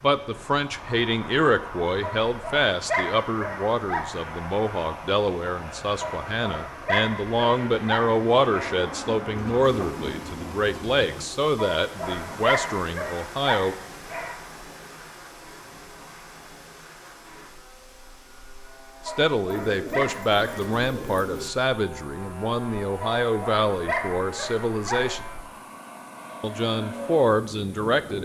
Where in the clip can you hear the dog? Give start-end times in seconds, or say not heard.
2.0-4.1, 6.0-8.8, 11.6-14.4, 19.1-20.8, 23.0-25.2.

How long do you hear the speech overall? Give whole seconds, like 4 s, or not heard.
22 s.